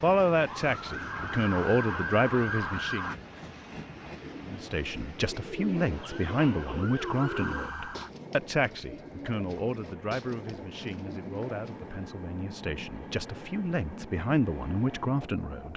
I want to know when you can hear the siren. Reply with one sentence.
The siren can be heard from 0.2 to 3.1 s and from 6.0 to 8.1 s.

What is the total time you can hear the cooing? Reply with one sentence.
The cooing can be heard for 8 seconds in total.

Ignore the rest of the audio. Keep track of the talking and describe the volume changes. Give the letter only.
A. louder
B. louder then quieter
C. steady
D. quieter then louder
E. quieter
D.